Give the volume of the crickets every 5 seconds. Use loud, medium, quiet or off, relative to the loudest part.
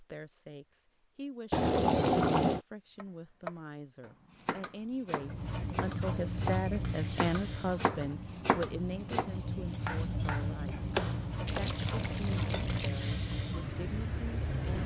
off, loud, loud.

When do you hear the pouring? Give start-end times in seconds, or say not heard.
1.5-2.6, 11.4-12.9.